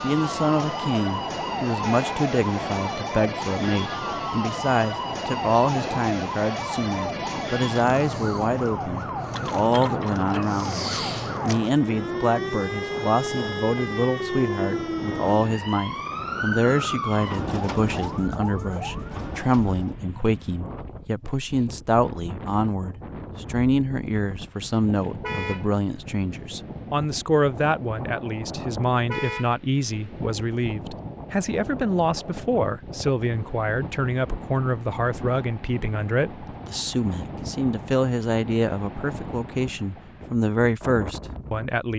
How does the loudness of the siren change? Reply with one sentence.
The loudness of the siren stays about the same.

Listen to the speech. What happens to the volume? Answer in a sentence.
The volume of the speech stays about the same.